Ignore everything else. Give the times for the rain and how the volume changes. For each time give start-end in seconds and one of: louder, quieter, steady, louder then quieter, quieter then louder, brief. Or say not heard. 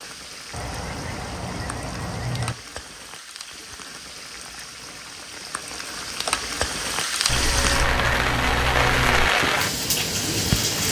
0.0-10.8 louder.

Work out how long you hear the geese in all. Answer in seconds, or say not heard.
4 s.